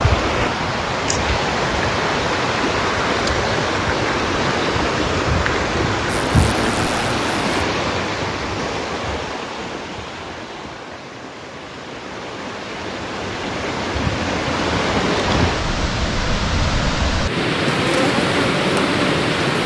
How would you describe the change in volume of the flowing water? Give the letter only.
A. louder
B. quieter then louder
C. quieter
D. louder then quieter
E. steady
B.